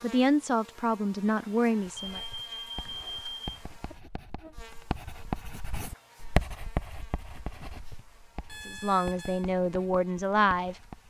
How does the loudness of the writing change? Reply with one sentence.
The volume of the writing goes up, then down.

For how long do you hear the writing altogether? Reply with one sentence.
You can hear the writing for 9 seconds altogether.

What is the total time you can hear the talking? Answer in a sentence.
The talking can be heard for 4 seconds in total.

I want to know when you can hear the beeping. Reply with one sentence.
The beeping can be heard from 1.9 to 3.5 s and from 8.4 to 9.4 s.